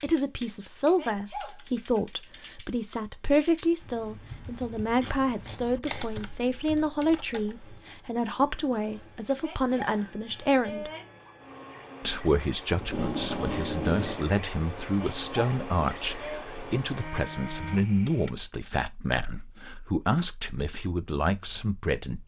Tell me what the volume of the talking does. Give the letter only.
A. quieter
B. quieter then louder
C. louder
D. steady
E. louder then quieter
D.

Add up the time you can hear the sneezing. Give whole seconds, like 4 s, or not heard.
4 s.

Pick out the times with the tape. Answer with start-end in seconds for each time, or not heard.
5.0-6.0, 12.8-14.3.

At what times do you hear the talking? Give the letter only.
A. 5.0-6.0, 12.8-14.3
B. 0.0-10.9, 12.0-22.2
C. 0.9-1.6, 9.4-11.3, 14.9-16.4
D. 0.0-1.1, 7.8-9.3
B.